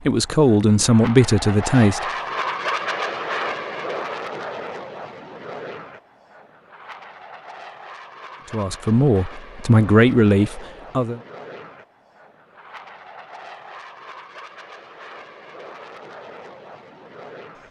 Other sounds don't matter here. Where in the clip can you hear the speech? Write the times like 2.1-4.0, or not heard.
0.1-2.0, 8.5-11.2.